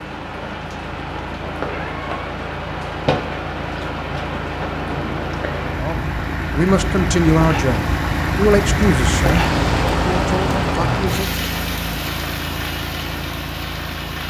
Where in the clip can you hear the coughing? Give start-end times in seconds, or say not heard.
not heard.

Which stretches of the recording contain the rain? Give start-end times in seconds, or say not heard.
0.0-14.2.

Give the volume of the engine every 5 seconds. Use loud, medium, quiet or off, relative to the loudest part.
medium, loud, loud.